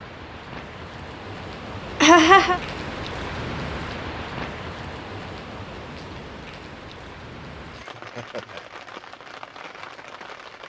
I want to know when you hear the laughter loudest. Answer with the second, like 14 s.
2 s.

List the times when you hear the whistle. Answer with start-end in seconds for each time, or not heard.
not heard.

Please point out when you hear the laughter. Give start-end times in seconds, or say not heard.
2.0-2.6, 7.8-8.7.